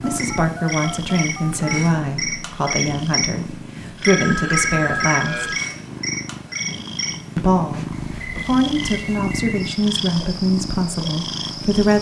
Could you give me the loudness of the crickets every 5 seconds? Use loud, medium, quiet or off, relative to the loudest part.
loud, loud, medium.